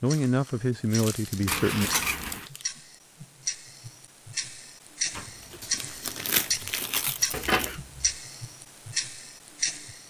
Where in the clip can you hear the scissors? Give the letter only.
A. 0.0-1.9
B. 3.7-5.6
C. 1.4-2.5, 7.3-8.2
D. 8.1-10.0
C.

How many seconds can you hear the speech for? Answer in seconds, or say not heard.
2 s.